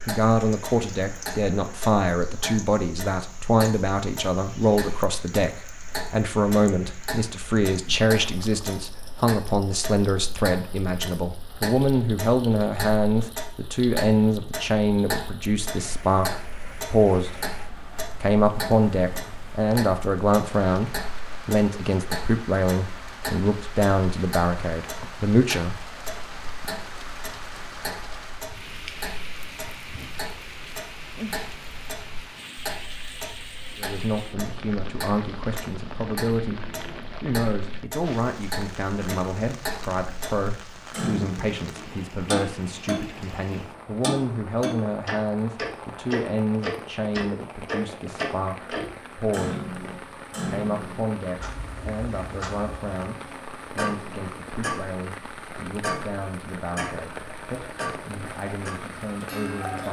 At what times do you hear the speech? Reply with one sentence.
You can hear the speech from 0.1 to 17.6 s, from 18.2 to 25.8 s, from 33.8 to 49.7 s and from 50.5 to 59.8 s.